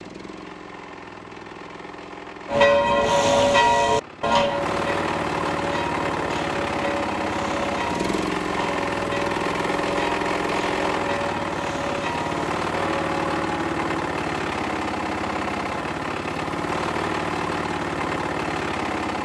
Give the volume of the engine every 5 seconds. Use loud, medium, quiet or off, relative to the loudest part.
medium, loud, loud, loud.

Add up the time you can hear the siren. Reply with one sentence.
The siren can't be heard in this clip.